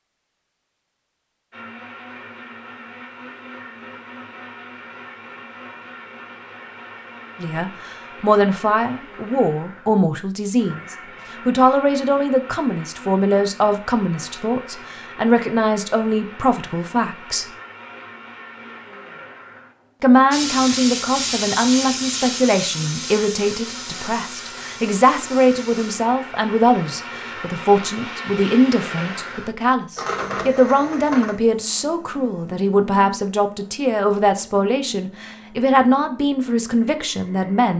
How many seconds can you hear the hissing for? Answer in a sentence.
The hissing can be heard for 6 seconds in total.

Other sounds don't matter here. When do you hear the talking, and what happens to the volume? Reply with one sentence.
You can hear the talking from 7.4 to 17.4 s, at a steady volume; and from 20.0 to 37.7 s, at a steady volume.